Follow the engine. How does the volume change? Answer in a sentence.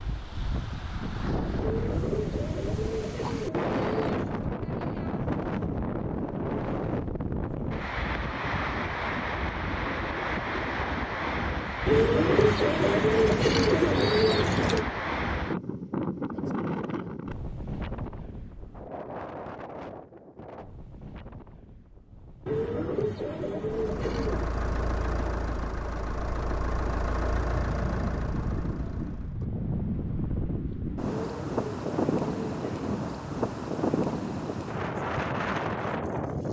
The volume of the engine goes down.